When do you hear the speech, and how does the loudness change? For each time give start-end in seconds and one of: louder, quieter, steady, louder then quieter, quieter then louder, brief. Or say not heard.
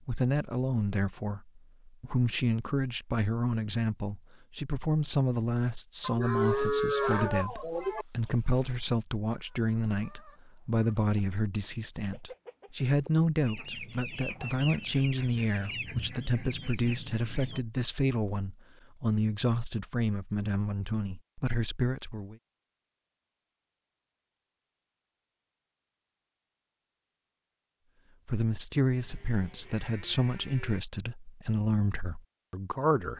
0.1-22.4 steady
28.2-33.1 quieter.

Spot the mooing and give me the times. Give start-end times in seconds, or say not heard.
6.0-8.1, 29.0-30.8.